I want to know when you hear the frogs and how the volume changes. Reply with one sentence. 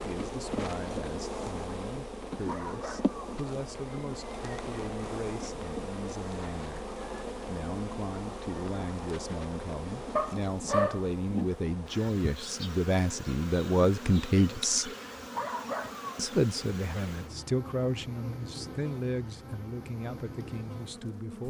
The frogs can't be heard in this clip.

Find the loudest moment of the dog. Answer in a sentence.
The loudest moment of the dog is at 11 seconds.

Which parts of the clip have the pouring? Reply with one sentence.
You can't hear the pouring here.